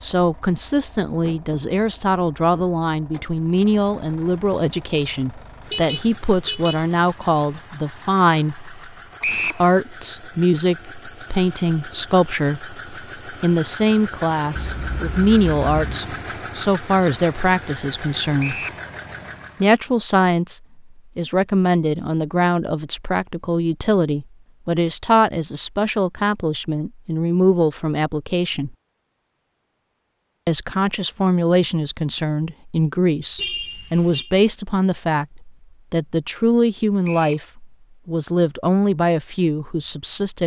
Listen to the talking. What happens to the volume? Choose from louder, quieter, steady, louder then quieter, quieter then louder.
steady.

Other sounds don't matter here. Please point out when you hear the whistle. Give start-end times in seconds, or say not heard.
9.2-9.7, 18.4-18.8, 37.0-37.5.